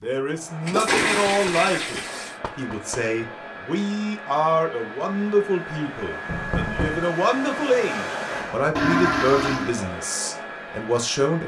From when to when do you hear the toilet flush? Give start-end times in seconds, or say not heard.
0.7-2.4, 8.8-9.7.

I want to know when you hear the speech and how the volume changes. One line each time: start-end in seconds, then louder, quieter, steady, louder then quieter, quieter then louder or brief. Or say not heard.
0.0-11.4 steady.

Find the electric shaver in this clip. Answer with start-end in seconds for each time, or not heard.
not heard.